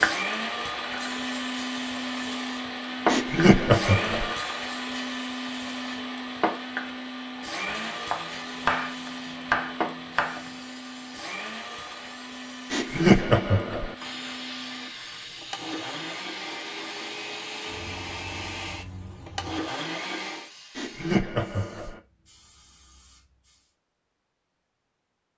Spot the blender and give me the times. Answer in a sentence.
The blender can be heard from 0.0 to 20.5 s.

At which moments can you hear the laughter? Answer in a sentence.
You can hear the laughter from 3.0 to 4.3 s, from 12.7 to 13.9 s and from 20.8 to 22.0 s.